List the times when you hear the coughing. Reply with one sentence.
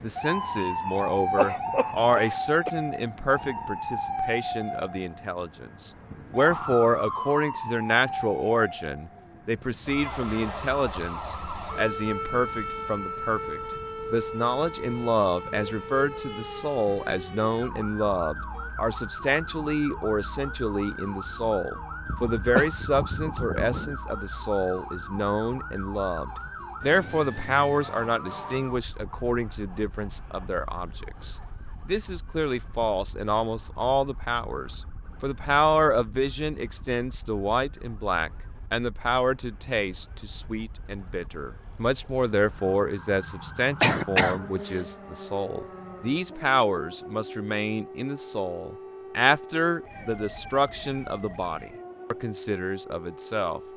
You can hear the coughing from 1.4 to 2.7 s, from 22.1 to 23.9 s and from 43.8 to 44.8 s.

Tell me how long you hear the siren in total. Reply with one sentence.
The siren can be heard for 54 seconds in total.